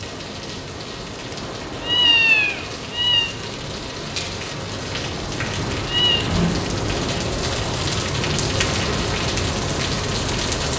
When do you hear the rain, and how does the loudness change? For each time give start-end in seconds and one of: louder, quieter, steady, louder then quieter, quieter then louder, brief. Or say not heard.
0.0-10.7 louder.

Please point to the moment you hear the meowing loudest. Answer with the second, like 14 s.
2 s.